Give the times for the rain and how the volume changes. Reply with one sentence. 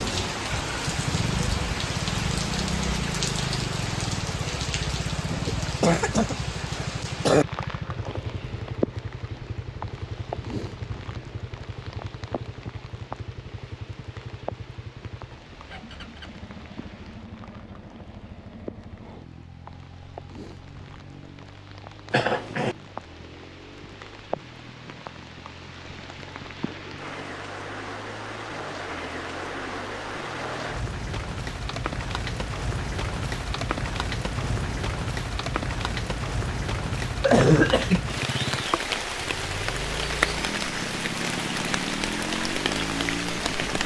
The rain can be heard from 0.0 to 43.8 s, getting quieter then louder.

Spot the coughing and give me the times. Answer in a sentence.
You can hear the coughing from 5.5 to 7.5 s, from 22.1 to 22.8 s and from 37.2 to 38.0 s.